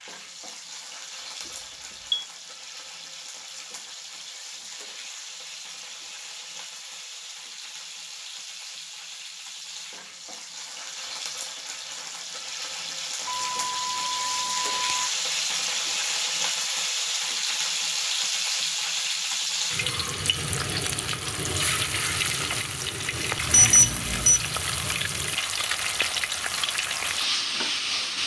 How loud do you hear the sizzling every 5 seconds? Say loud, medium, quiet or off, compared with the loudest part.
quiet, quiet, medium, loud, loud, loud.